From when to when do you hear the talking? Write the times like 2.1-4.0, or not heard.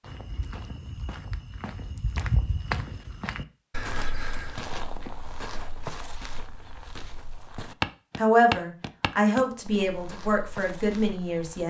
8.2-11.6.